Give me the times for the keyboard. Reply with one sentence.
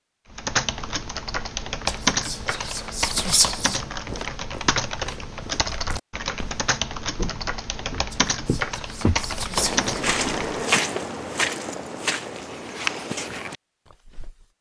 The keyboard can be heard from 0.3 to 10.6 s.